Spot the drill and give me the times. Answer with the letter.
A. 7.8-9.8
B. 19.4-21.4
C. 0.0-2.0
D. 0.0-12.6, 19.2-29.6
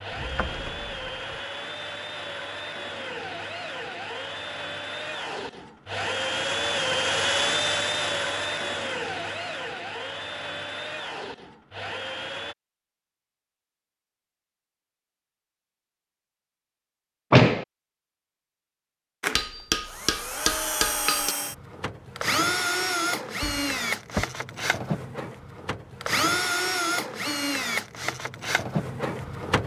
D.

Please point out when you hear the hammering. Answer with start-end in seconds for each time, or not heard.
19.4-21.4.